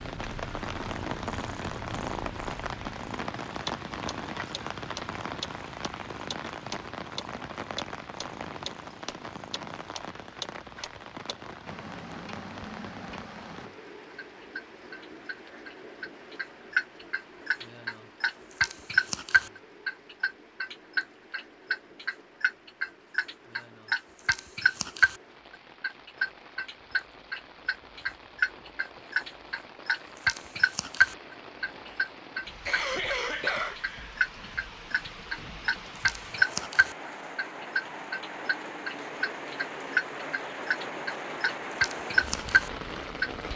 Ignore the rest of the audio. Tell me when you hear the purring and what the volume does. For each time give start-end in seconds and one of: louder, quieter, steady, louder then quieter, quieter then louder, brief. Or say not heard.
0.0-10.0 quieter.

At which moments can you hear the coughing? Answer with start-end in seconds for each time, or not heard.
32.6-33.8.